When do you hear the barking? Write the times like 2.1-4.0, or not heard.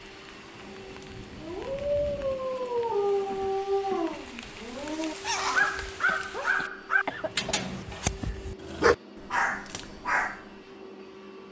1.4-10.4.